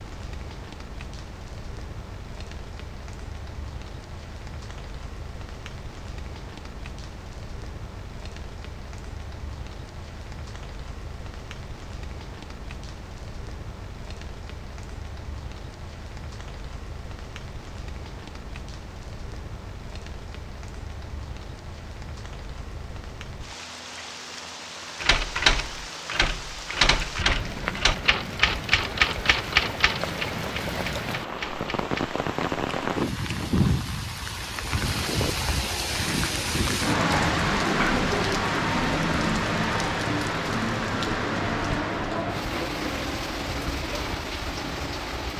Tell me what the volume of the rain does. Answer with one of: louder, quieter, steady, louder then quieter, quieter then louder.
louder.